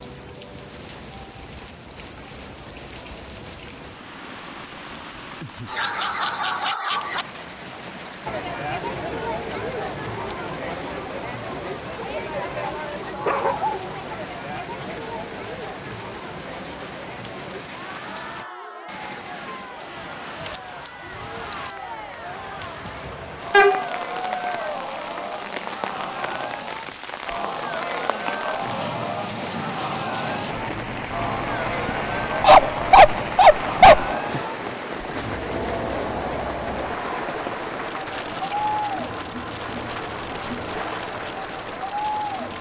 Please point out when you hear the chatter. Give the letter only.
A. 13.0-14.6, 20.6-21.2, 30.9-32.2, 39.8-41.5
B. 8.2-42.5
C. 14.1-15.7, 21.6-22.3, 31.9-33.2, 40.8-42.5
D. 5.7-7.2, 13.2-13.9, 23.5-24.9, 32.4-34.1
B.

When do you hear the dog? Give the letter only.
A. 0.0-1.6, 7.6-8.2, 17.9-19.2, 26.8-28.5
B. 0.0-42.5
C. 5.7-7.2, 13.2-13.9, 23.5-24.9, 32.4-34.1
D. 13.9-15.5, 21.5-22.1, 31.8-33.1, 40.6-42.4
C.